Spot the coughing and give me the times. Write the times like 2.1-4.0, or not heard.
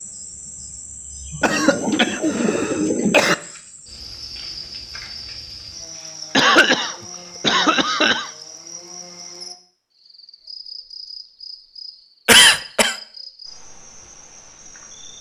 1.4-3.4, 6.3-8.3, 12.2-12.9.